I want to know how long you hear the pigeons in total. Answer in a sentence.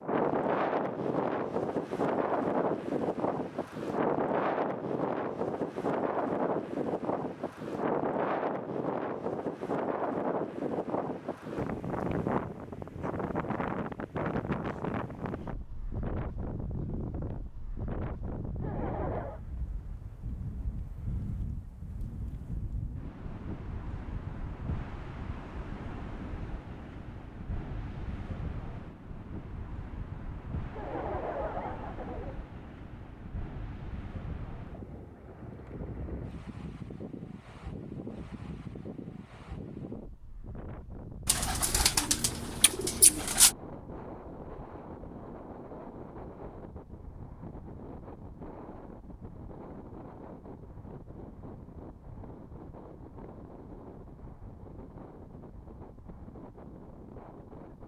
You can hear the pigeons for 2 seconds altogether.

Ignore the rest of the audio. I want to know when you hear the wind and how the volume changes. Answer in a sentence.
You can hear the wind from 0.0 to 57.8 s, getting quieter.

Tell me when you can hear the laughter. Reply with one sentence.
The laughter can be heard from 18.6 to 19.4 s and from 30.7 to 32.4 s.